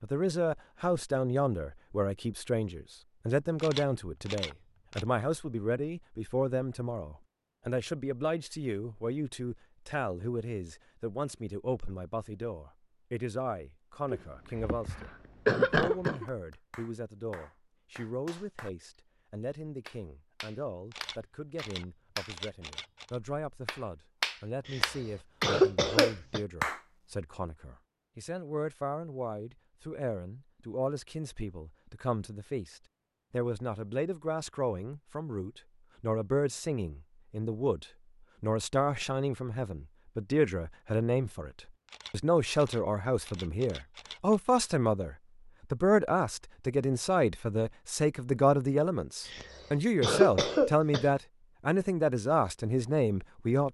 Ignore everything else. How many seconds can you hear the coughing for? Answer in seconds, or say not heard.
6 s.